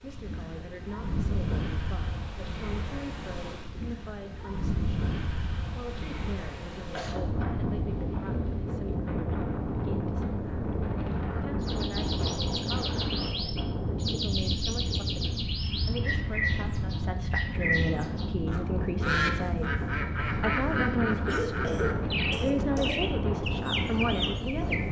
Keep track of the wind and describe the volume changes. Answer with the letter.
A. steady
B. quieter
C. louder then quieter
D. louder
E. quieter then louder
A.